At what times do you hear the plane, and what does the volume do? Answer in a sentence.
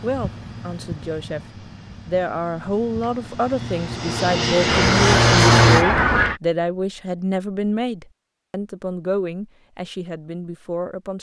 The plane can be heard from 0.0 to 5.8 s, getting quieter then louder.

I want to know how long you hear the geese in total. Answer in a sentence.
You can hear the geese for 2 seconds altogether.